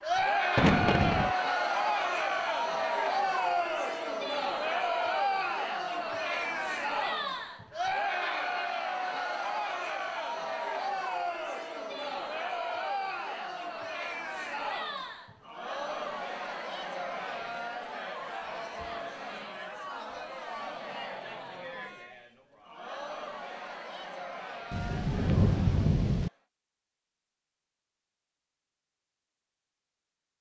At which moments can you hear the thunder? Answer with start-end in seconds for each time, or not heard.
0.6-1.4, 24.7-26.3.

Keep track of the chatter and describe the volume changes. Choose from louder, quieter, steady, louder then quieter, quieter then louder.
quieter.